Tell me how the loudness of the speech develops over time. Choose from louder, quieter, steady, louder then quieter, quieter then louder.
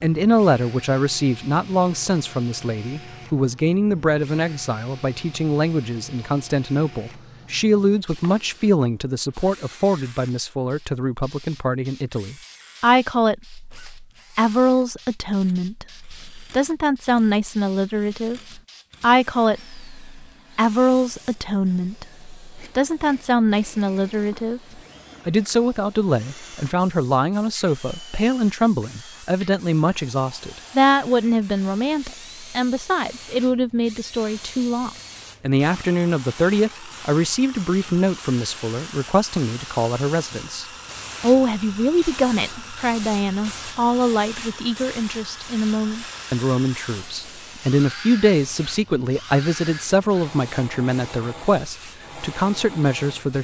steady.